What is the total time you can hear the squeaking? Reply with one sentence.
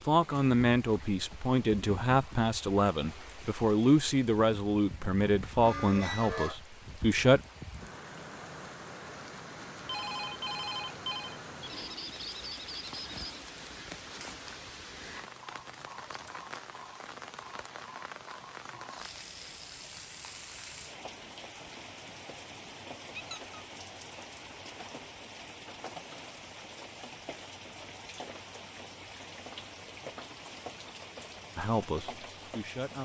You can hear the squeaking for 3 seconds altogether.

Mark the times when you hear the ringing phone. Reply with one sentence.
You can hear the ringing phone from 9.8 to 11.4 s.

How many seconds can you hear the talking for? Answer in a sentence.
You can hear the talking for 9 seconds altogether.